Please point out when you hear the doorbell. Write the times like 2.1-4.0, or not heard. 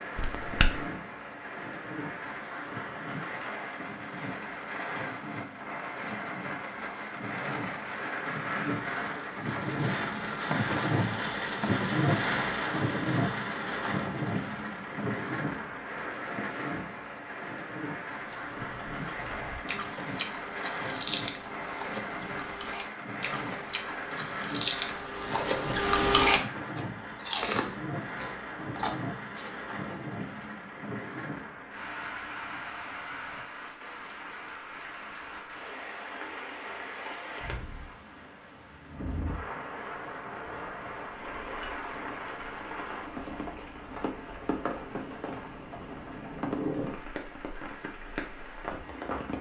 0.1-0.8.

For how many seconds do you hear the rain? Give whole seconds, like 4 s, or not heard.
49 s.